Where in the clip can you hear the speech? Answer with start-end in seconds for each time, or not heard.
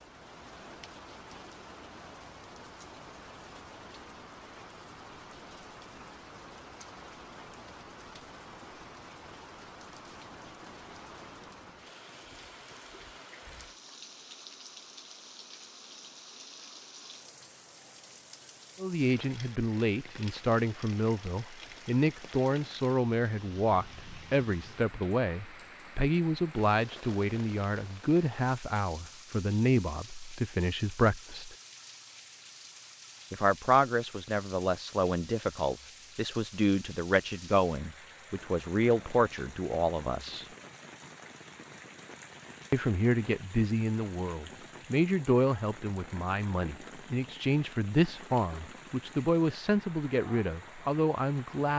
18.8-31.6, 33.3-40.5, 42.7-51.7.